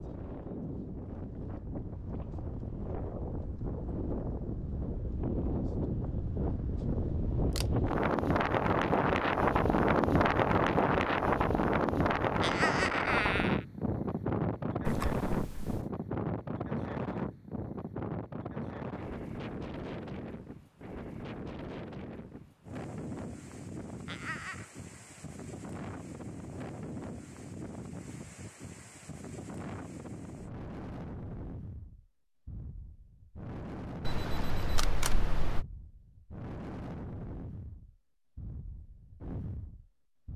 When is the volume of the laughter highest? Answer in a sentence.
The loudest moment of the laughter is at 13 seconds.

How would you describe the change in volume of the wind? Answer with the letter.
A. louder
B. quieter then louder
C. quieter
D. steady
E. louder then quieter
E.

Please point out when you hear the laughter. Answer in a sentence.
The laughter can be heard from 12.4 to 13.7 s and from 24.1 to 24.7 s.